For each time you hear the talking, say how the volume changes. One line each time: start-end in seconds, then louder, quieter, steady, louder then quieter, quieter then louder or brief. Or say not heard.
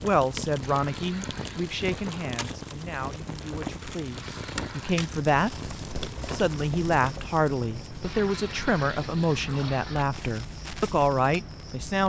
0.0-12.0 quieter then louder.